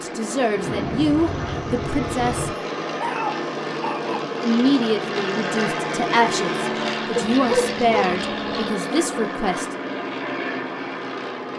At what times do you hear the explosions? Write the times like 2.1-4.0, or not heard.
0.5-2.5.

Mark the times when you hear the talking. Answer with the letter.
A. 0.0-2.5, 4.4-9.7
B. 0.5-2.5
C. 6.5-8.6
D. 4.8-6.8
A.